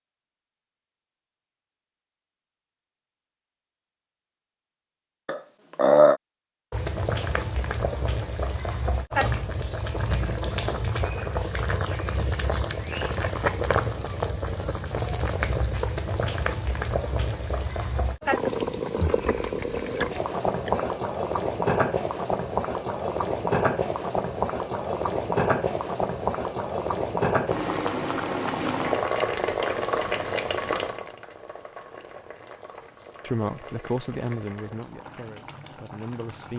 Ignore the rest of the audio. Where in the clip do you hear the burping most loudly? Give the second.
6 s.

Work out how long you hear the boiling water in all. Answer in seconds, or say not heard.
30 s.